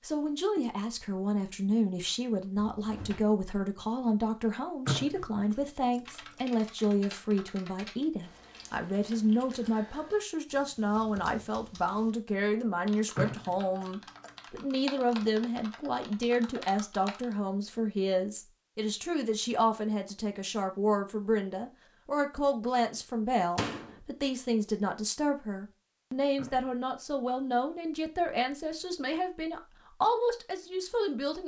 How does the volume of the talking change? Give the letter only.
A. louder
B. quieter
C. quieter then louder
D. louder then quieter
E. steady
E.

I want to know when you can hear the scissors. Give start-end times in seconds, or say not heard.
4.8-5.5, 13.2-13.8, 26.4-26.8.